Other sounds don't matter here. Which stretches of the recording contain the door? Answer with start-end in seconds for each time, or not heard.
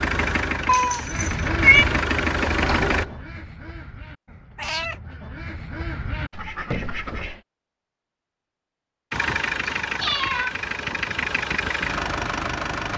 2.4-3.2.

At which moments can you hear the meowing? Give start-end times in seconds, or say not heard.
0.7-1.9, 4.5-5.0, 9.8-10.6.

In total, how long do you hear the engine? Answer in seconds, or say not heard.
7 s.